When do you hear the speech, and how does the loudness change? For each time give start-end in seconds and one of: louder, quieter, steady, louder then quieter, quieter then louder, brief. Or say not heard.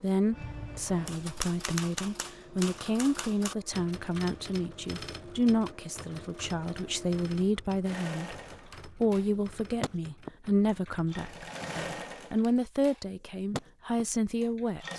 0.0-14.9 steady.